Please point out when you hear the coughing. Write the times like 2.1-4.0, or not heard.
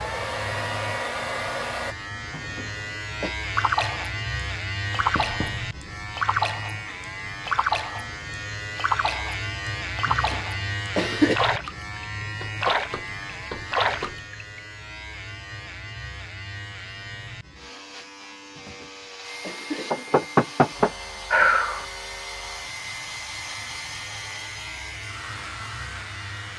2.3-3.4, 10.1-11.3, 18.6-20.2.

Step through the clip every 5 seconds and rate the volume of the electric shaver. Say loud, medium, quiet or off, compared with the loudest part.
loud, loud, loud, medium, medium, medium.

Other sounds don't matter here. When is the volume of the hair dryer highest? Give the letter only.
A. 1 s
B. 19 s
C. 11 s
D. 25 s
A.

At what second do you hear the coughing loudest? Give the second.
11 s.